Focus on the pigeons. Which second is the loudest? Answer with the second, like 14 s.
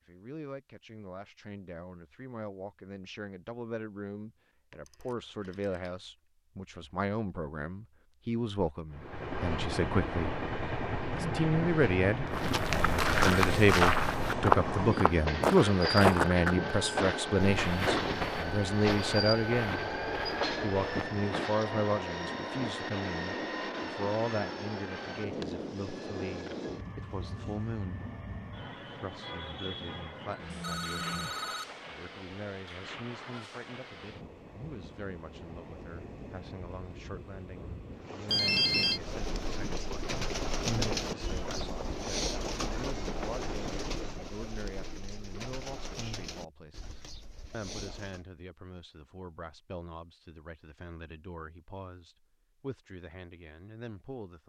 41 s.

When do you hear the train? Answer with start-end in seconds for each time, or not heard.
8.9-44.4.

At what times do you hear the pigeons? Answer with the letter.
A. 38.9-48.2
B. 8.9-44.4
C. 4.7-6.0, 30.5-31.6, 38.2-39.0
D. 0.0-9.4
A.